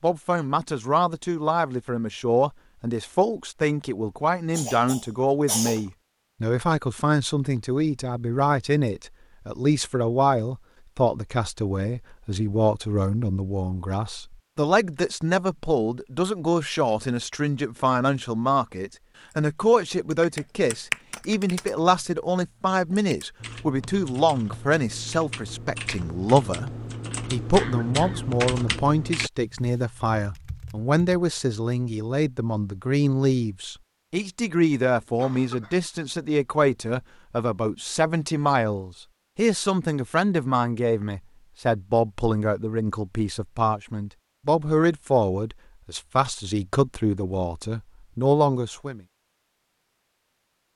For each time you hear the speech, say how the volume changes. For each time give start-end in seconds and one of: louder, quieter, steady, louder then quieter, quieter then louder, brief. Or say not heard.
0.0-26.7 steady
27.3-49.0 steady.